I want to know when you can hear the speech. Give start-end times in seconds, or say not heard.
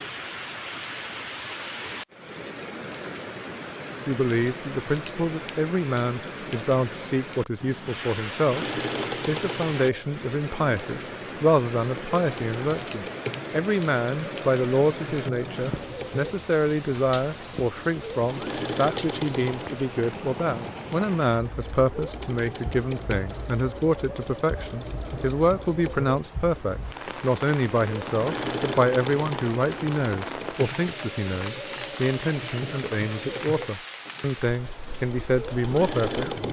4.0-8.7, 9.2-36.4.